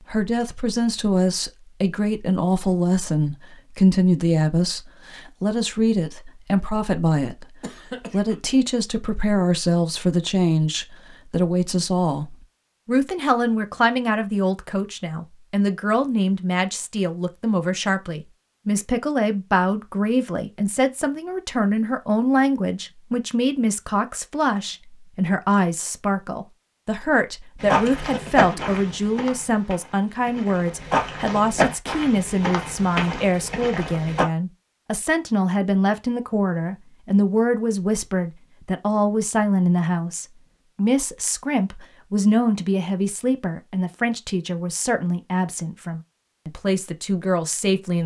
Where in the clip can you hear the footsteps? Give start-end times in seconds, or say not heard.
27.6-34.2.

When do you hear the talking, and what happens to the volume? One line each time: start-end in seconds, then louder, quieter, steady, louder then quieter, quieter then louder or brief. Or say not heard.
0.0-48.0 steady.